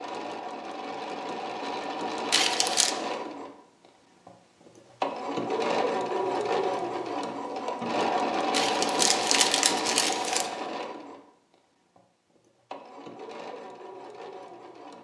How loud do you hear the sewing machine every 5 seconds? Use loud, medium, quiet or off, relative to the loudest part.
medium, loud, medium.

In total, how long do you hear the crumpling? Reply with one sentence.
You can hear the crumpling for 3 seconds altogether.